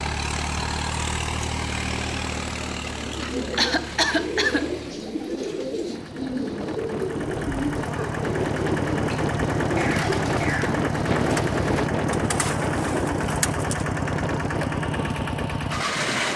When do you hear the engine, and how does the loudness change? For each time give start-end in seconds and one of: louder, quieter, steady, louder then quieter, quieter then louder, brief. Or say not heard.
0.0-16.3 quieter then louder.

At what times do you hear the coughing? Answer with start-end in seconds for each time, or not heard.
3.1-5.0, 9.8-10.8.